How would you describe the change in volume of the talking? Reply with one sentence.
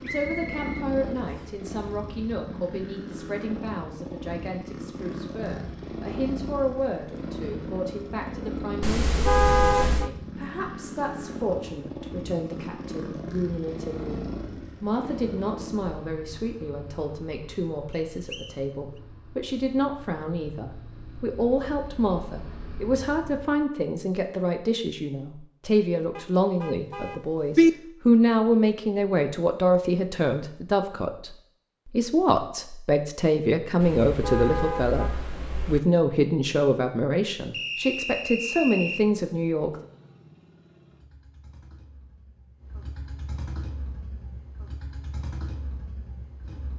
The volume of the talking goes up.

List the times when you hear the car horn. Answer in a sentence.
You can hear the car horn from 8.8 to 10.1 s, from 26.1 to 27.7 s and from 33.8 to 35.8 s.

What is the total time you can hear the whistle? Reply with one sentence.
The whistle can be heard for 4 seconds in total.